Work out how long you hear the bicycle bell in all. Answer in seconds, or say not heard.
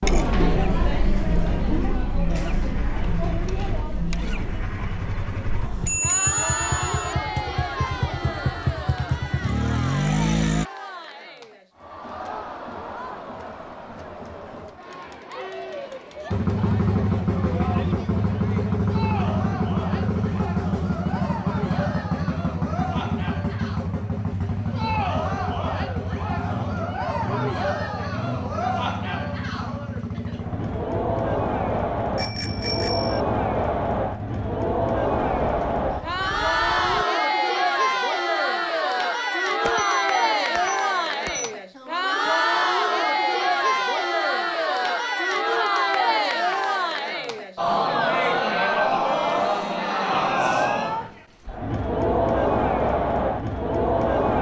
4 s.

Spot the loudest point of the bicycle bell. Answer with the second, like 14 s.
6 s.